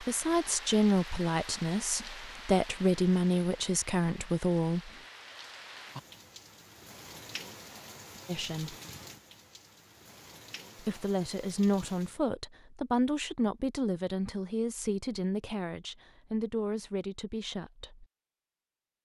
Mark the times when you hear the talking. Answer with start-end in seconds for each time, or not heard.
0.0-4.9, 8.2-8.8, 10.8-18.1.